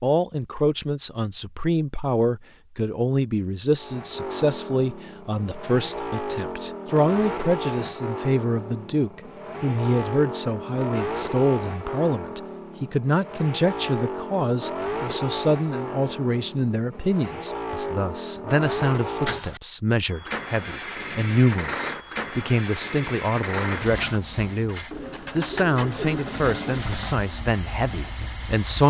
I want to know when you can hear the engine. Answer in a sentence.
You can hear the engine from 3.8 to 28.8 s.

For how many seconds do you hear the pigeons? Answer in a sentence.
You can hear the pigeons for 2 seconds altogether.